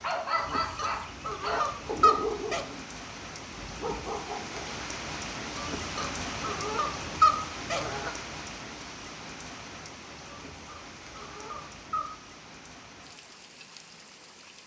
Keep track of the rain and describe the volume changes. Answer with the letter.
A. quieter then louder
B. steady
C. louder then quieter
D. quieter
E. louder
C.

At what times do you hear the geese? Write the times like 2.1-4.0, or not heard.
0.3-2.6, 5.5-8.1, 10.2-12.2.